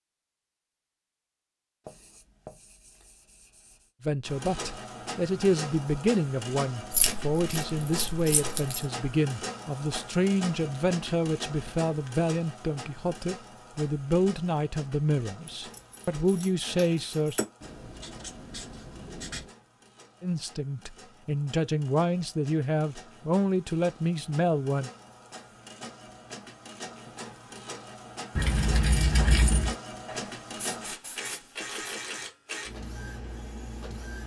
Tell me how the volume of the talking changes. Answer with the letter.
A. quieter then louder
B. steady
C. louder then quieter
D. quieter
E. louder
B.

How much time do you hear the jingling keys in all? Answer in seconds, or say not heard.
5 s.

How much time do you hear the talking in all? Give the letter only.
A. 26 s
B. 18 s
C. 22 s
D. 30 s
B.